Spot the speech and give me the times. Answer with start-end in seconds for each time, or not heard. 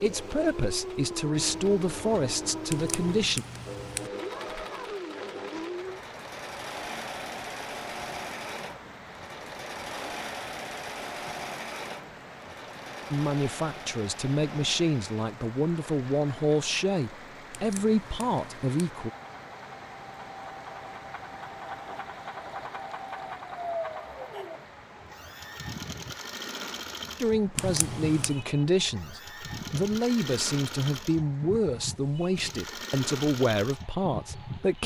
0.0-3.5, 13.1-19.1, 27.1-34.8.